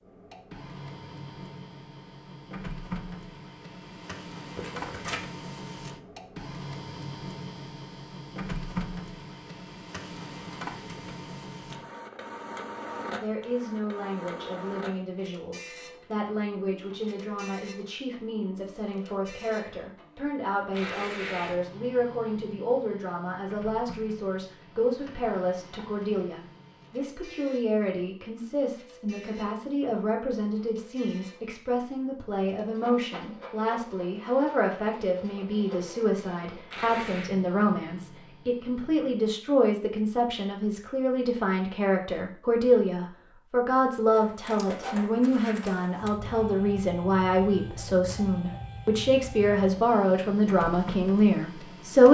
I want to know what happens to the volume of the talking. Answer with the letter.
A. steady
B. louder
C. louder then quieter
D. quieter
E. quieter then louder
B.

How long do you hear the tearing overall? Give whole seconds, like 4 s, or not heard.
2 s.